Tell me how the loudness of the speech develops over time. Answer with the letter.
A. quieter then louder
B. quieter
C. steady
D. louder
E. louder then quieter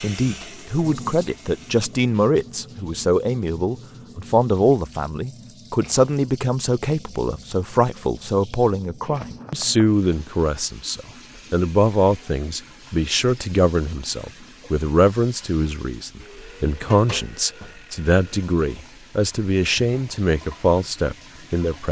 C.